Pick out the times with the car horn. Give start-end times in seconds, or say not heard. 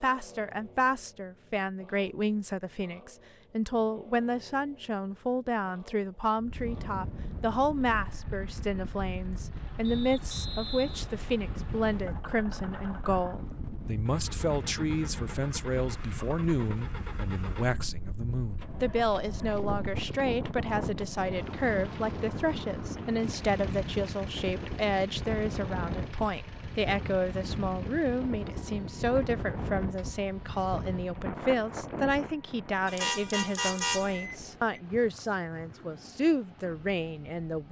32.9-34.8.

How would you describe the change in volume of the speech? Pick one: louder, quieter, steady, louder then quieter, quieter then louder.
steady.